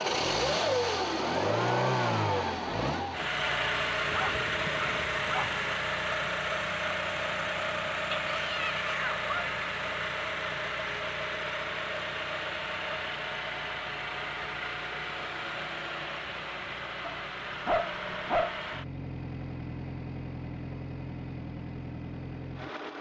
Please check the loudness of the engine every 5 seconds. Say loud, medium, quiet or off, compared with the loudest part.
loud, loud, medium, medium, medium.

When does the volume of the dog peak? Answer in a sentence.
The volume of the dog peaks at 18 seconds.